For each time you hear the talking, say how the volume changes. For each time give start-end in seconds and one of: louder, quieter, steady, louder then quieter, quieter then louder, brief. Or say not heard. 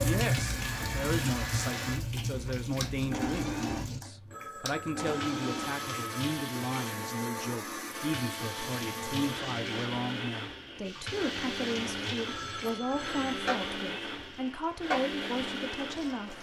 0.0-16.3 steady.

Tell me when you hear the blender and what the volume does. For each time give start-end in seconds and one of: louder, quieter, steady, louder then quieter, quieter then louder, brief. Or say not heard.
0.0-16.3 steady.